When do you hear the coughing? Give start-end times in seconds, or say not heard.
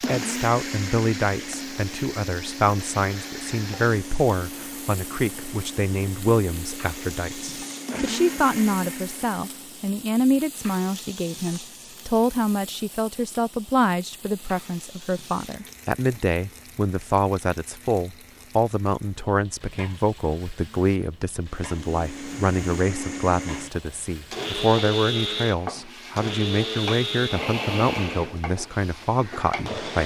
not heard.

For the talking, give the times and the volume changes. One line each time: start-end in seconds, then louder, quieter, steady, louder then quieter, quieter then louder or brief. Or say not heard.
0.1-30.0 steady.